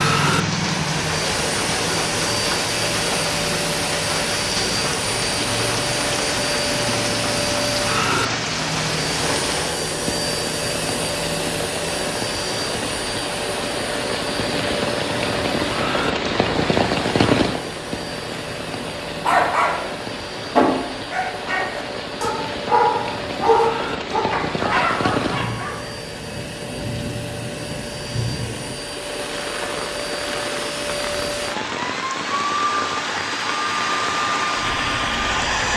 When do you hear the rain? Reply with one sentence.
You can hear the rain from 0.0 to 35.7 s.